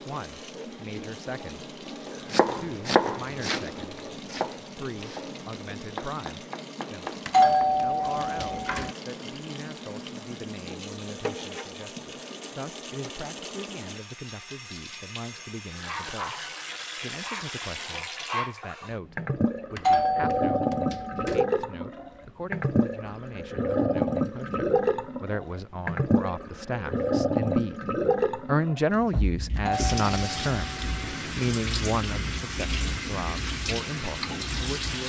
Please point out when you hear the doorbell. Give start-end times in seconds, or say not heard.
7.2-8.9, 19.8-21.4, 29.6-30.9.